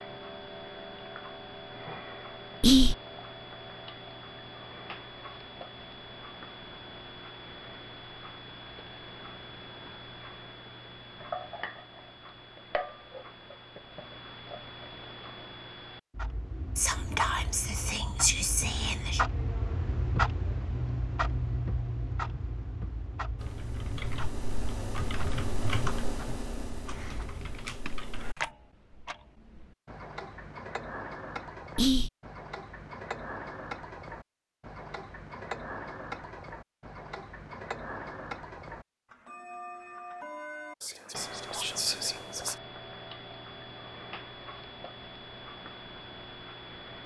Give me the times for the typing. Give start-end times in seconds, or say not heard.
23.4-28.5.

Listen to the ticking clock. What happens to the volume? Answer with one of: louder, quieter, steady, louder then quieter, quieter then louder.
louder then quieter.